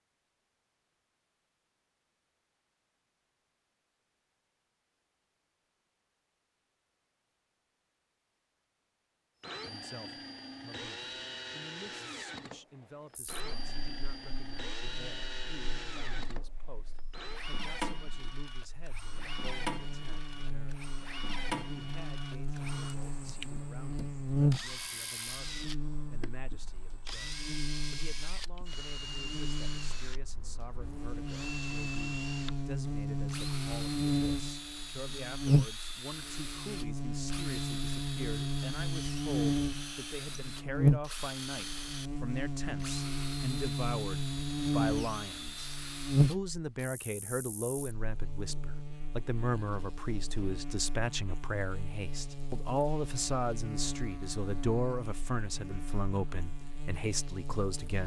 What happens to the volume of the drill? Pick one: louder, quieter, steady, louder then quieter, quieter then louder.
steady.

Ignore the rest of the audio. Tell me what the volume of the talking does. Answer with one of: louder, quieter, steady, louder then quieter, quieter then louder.
louder.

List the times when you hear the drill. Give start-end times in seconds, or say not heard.
9.4-46.9.